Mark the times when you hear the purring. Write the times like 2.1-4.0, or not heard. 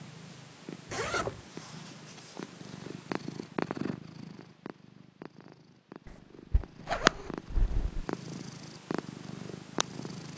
0.0-10.3.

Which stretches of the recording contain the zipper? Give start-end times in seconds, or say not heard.
0.9-1.4, 6.0-8.1.